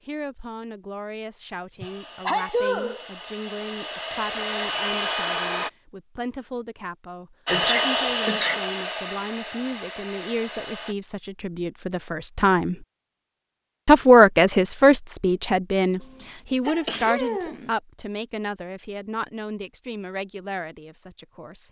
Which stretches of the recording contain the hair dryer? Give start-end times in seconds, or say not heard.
1.8-5.7, 7.5-10.9.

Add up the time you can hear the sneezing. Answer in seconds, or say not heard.
4 s.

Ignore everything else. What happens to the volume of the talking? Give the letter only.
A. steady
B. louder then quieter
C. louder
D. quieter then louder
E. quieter
B.